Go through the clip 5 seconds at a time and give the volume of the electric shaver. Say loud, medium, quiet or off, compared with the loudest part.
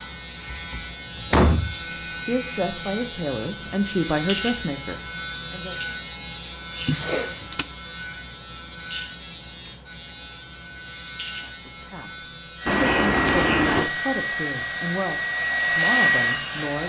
loud, loud, medium, medium.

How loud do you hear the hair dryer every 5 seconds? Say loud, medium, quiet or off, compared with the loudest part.
off, off, medium, loud.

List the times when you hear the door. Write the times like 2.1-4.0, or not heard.
0.5-1.8, 6.8-7.7, 12.7-13.9.